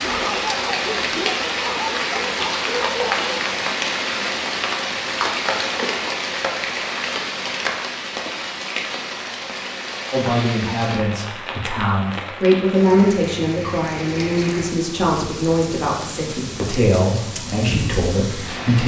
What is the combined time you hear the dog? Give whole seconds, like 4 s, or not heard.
3 s.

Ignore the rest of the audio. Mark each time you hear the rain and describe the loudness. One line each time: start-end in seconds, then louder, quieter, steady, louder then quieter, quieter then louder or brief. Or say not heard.
0.0-18.8 quieter.